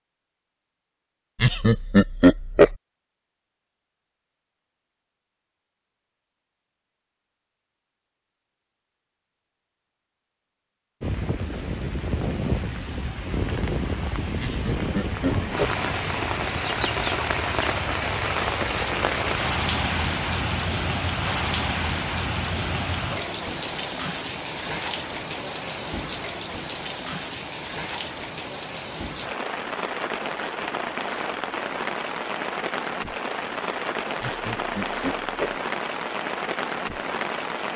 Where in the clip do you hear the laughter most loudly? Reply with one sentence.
The loudest moment of the laughter is at 2 seconds.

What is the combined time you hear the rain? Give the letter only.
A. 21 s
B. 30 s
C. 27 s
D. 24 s
C.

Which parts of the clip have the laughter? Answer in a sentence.
The laughter can be heard from 1.4 to 2.8 s, from 14.4 to 15.8 s and from 34.2 to 35.6 s.